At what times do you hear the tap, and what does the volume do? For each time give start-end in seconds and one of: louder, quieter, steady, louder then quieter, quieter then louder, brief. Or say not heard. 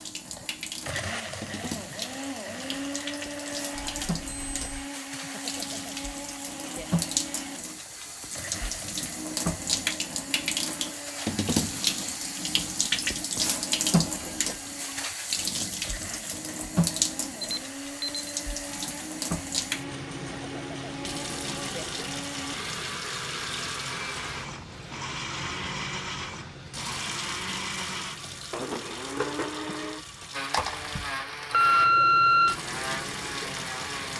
0.0-34.1 louder then quieter.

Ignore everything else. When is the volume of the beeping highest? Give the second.
32 s.